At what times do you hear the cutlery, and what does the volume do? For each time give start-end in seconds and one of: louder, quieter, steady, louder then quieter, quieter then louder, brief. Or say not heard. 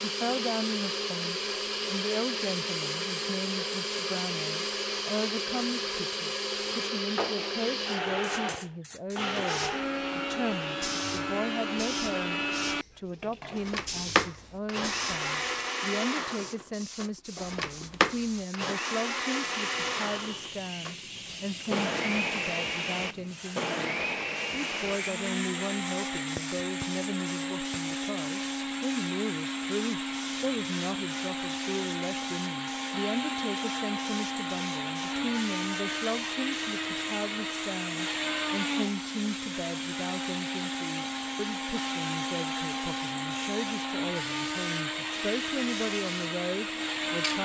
not heard.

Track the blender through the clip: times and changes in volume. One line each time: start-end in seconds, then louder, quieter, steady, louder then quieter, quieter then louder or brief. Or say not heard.
0.0-47.4 steady.